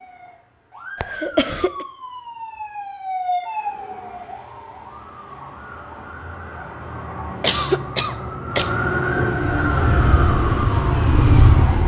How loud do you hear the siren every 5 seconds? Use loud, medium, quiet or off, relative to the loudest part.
medium, loud, loud.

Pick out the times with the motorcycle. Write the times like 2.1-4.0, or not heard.
9.6-11.8.